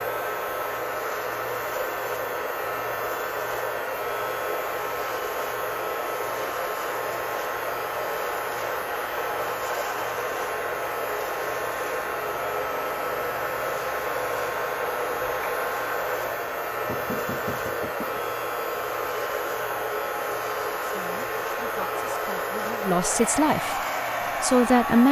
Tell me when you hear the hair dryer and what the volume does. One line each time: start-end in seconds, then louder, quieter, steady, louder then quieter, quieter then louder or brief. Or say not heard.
0.0-25.0 steady.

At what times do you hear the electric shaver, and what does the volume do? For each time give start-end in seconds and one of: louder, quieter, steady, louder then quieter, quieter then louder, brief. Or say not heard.
0.0-25.0 steady.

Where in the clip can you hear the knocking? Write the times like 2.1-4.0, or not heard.
16.9-18.2.